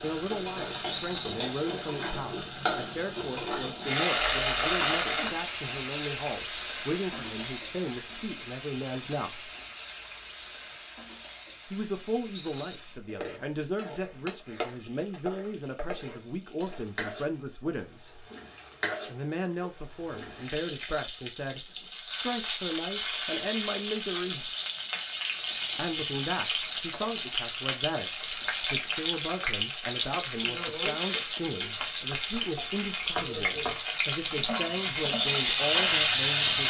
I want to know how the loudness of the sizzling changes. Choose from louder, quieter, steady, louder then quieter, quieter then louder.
quieter then louder.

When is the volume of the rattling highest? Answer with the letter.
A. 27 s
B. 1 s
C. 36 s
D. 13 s
B.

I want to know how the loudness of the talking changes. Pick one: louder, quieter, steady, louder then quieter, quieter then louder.
steady.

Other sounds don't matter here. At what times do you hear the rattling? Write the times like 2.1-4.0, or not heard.
0.9-1.4, 12.3-12.8, 25.5-25.9.